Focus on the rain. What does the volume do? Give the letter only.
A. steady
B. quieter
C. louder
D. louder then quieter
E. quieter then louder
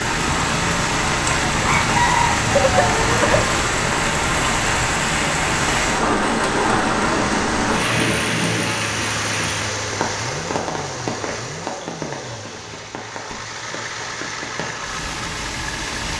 B.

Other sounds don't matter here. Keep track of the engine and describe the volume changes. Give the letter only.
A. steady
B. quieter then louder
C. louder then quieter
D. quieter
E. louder
A.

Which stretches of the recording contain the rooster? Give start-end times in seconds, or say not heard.
1.6-3.5.